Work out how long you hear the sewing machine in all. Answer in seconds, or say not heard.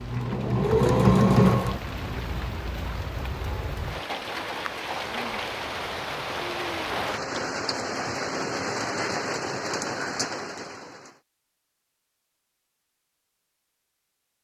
2 s.